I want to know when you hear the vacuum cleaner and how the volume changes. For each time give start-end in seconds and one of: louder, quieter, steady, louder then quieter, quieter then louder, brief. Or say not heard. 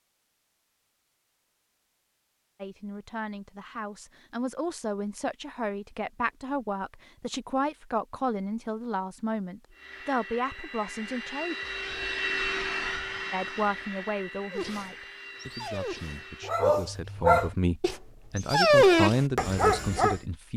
9.7-16.6 louder then quieter.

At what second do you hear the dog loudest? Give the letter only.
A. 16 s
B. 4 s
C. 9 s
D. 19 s
D.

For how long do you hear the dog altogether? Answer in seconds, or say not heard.
6 s.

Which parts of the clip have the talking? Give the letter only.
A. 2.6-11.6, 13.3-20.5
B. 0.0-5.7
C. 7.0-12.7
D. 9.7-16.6
A.